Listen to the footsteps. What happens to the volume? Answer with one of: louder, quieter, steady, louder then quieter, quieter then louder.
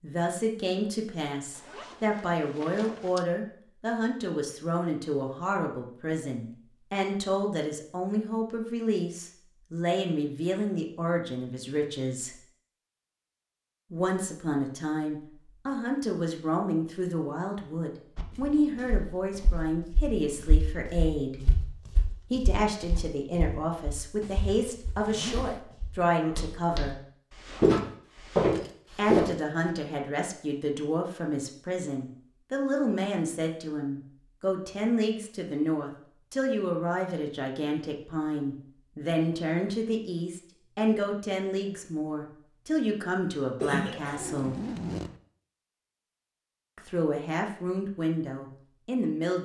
louder.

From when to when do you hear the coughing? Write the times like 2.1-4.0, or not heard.
43.6-44.6.